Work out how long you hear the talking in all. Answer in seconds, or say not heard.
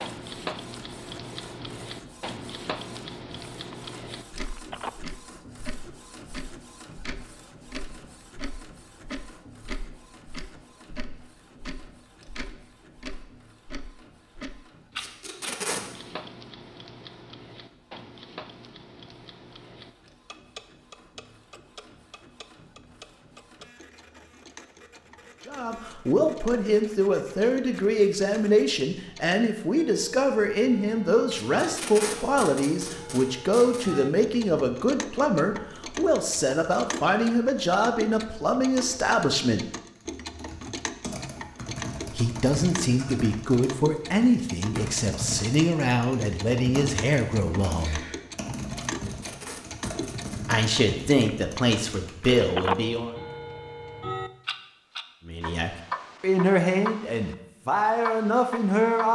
27 s.